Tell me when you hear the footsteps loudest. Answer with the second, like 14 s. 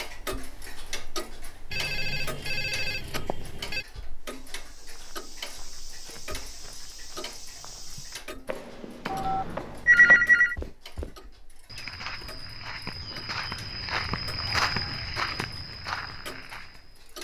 15 s.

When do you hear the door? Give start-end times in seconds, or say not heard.
not heard.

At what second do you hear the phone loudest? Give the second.
10 s.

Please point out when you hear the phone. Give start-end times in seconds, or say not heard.
1.7-3.9, 9.1-10.6.